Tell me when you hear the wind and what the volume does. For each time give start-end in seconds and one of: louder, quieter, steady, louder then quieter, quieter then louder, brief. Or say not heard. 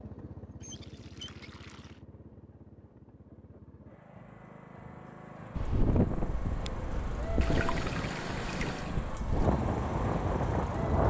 5.5-11.0 quieter then louder.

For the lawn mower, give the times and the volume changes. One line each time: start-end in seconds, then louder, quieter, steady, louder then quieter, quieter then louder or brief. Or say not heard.
0.0-11.0 louder.